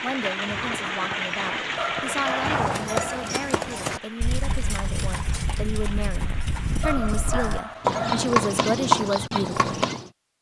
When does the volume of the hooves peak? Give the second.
9 s.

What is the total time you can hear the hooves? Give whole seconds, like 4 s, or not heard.
10 s.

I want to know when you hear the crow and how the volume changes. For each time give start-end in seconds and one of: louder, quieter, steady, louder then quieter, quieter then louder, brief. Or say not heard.
not heard.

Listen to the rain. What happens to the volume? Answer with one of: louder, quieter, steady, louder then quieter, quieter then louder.
quieter.